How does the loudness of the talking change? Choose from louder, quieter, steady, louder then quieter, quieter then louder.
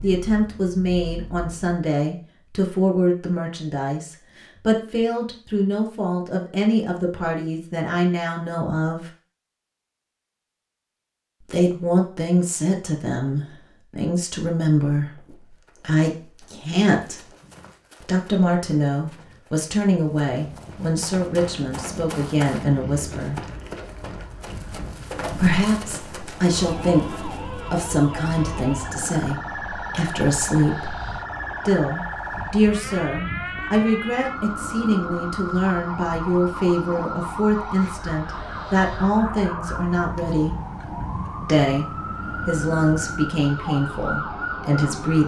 steady.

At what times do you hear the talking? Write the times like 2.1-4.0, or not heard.
0.0-9.1, 11.4-17.2, 18.0-23.4, 25.4-30.9, 31.6-40.5, 41.4-45.2.